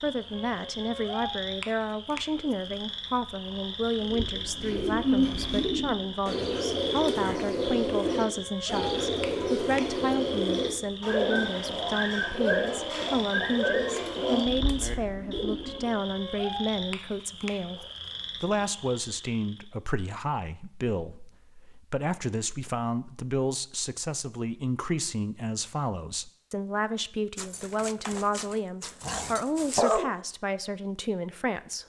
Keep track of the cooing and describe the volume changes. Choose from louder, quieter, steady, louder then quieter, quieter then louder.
steady.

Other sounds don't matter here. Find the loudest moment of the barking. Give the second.
30 s.